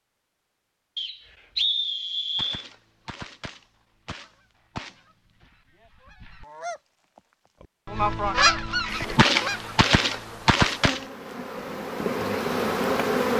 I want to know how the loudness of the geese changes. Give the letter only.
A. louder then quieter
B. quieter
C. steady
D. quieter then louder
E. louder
E.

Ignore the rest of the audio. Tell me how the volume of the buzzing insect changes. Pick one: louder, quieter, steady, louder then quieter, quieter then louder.
louder.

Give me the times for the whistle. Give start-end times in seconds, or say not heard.
0.9-2.6.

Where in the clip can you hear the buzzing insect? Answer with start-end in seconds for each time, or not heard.
8.8-13.3.